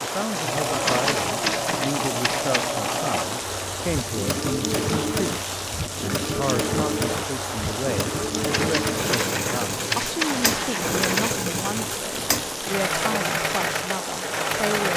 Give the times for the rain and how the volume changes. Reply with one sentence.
The rain can be heard from 0.0 to 14.9 s, at a steady volume.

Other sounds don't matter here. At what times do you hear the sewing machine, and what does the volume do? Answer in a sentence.
The sewing machine can be heard from 0.0 to 14.9 s, at a steady volume.